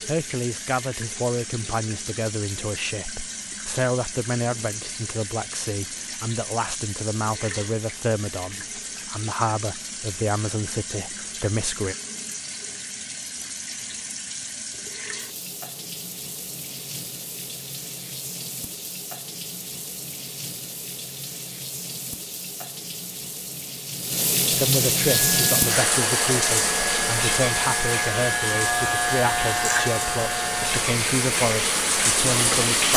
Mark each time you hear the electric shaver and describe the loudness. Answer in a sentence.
You can hear the electric shaver from 25.1 to 32.9 s, getting louder then quieter.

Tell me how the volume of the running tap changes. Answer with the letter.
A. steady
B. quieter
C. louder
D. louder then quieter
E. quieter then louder
C.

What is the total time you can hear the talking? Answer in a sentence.
You can hear the talking for 20 seconds altogether.